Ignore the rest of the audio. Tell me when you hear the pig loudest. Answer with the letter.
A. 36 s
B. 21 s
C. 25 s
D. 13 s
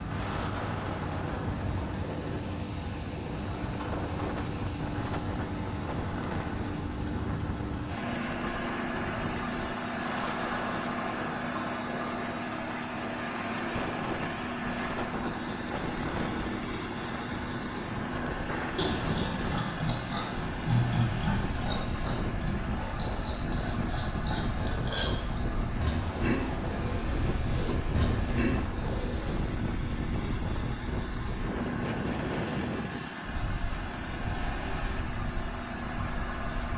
B.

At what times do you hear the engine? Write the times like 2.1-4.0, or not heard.
0.0-36.7.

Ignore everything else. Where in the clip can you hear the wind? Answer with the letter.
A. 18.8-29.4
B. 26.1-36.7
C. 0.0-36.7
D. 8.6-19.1
C.